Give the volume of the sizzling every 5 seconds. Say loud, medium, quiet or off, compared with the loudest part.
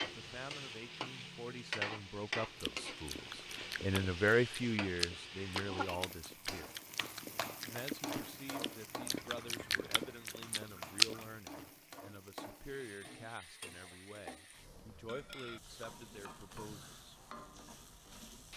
loud, loud, medium, medium.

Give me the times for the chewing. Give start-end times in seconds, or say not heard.
2.5-11.2.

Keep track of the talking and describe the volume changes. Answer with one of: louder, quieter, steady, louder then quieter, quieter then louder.
louder then quieter.